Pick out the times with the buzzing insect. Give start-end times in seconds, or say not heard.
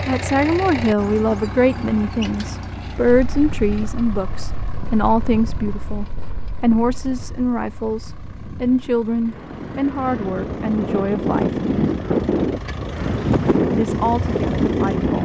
not heard.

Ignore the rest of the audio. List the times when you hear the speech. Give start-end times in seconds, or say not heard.
0.1-11.6, 13.7-15.2.